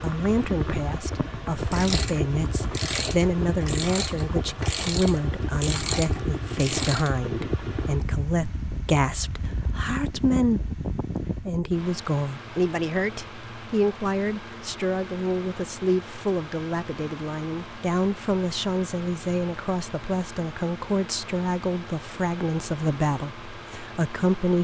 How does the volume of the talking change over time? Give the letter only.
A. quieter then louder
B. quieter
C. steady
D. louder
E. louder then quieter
C.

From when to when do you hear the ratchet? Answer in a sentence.
You can hear the ratchet from 1.7 to 7.2 s.